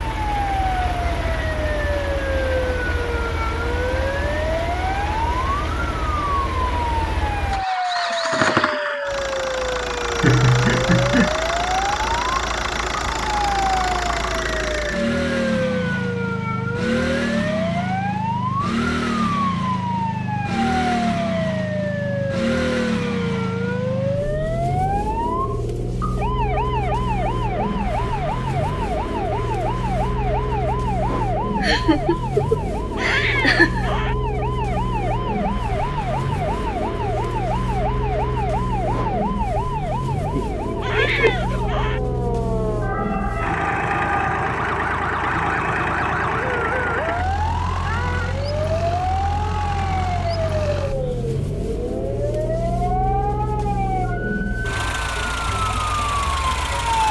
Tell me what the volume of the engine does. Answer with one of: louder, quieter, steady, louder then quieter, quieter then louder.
steady.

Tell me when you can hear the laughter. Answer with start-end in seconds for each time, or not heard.
10.2-11.3, 31.6-33.9, 40.3-41.7.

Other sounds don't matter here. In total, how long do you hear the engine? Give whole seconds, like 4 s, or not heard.
57 s.